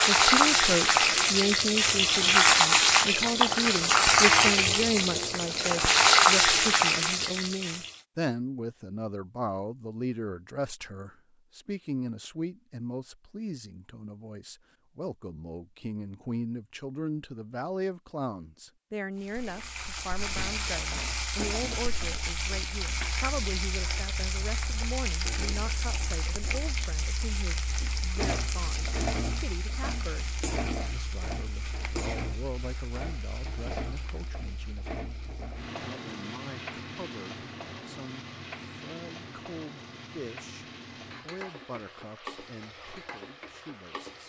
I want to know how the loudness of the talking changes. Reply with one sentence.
The volume of the talking goes down.